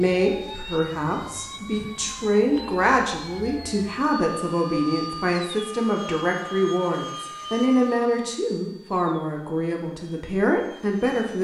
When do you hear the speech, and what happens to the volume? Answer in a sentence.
You can hear the speech from 0.0 to 11.3 s, at a steady volume.